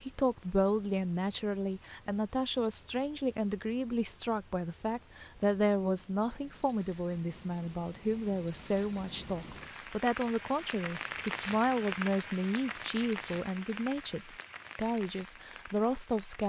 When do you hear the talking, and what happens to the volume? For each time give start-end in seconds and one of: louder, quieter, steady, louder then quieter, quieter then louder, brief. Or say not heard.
0.0-16.4 steady.